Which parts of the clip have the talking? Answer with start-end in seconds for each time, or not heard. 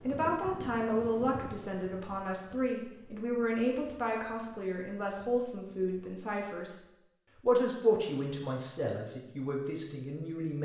0.0-10.5.